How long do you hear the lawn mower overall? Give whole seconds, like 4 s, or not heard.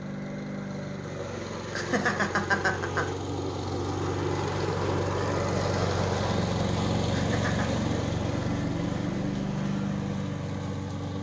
11 s.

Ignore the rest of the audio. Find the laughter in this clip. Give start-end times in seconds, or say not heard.
1.8-3.0, 7.1-7.8.